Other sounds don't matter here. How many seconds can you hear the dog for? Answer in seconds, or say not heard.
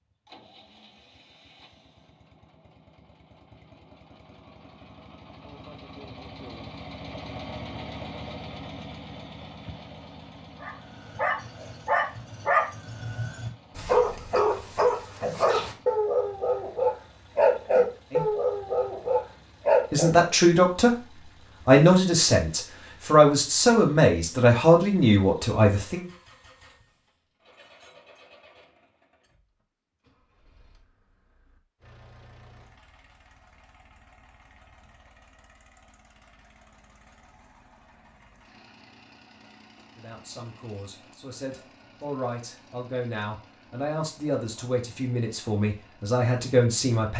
10 s.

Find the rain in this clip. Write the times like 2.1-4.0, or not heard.
not heard.